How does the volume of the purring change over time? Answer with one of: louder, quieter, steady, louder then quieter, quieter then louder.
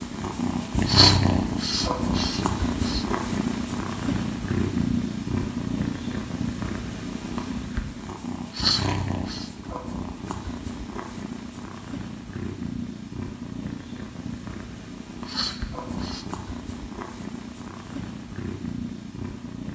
quieter.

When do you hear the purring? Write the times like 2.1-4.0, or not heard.
0.0-19.7.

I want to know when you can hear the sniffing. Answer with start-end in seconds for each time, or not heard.
0.8-3.0, 8.5-9.5, 15.2-16.2.